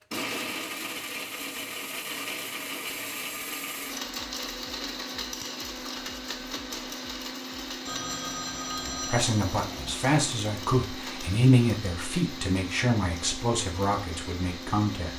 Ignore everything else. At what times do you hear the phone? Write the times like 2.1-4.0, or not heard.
7.8-10.0.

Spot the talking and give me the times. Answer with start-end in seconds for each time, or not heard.
8.8-15.1.